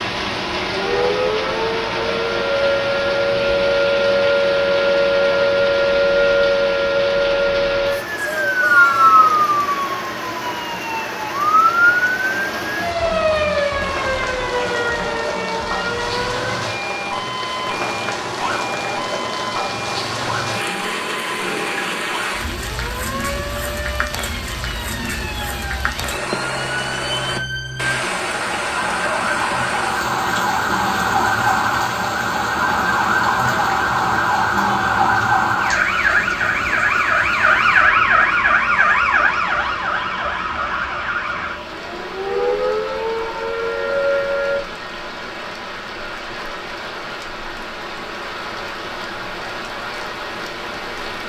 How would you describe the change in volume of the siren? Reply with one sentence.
The volume of the siren goes down, then up.